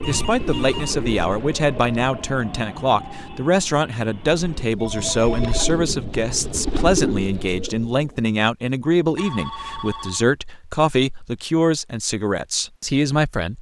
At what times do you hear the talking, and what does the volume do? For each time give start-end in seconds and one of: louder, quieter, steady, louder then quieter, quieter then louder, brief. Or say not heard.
0.1-13.5 steady.